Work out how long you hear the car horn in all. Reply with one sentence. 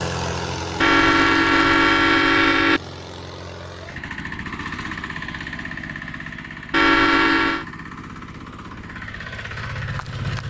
The car horn can be heard for 3 seconds in total.